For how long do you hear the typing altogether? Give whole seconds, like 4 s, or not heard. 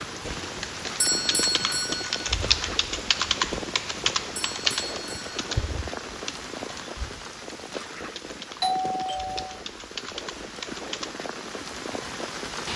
11 s.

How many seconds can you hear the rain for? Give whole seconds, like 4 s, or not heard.
13 s.